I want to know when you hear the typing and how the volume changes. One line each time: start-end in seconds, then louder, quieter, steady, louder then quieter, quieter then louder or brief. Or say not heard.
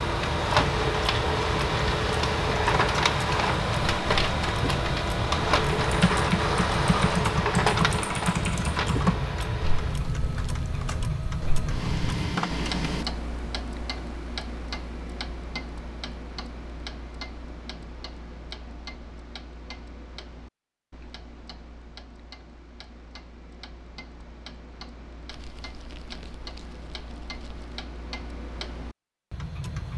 5.8-12.1 quieter.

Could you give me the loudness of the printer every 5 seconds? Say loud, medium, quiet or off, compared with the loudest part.
loud, loud, medium, off, off, off.